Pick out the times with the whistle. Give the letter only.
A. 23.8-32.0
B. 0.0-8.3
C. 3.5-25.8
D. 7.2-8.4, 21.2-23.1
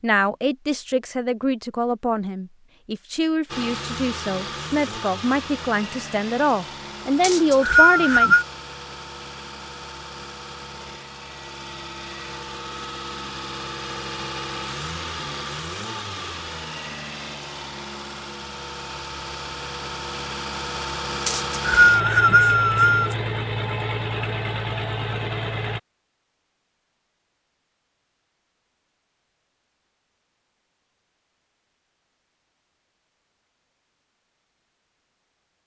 D.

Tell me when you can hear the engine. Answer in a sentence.
The engine can be heard from 3.5 to 25.8 s.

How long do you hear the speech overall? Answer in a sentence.
You can hear the speech for 8 seconds altogether.